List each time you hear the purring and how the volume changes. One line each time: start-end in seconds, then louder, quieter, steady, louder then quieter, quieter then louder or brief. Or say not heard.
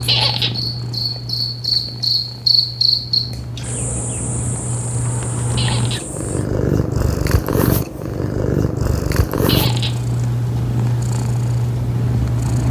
0.0-12.6 louder.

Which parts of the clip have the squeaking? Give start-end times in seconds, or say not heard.
0.1-0.6, 5.5-6.0, 9.4-10.0.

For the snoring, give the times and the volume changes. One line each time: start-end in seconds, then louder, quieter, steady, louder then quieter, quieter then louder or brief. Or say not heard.
not heard.